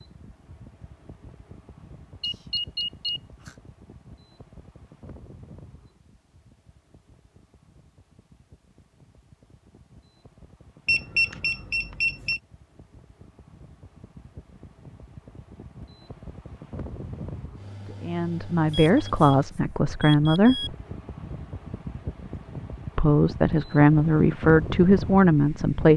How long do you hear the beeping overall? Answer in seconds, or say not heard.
5 s.